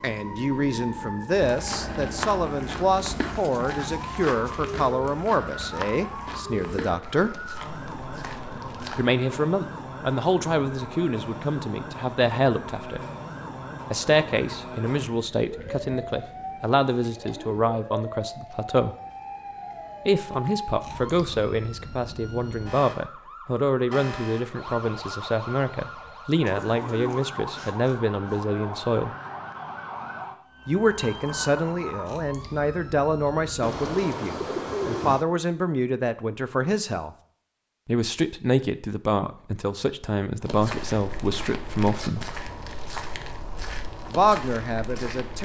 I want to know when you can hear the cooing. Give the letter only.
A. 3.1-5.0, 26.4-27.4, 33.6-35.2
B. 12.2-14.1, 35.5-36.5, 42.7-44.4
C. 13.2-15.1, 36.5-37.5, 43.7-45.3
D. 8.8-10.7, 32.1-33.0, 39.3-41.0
A.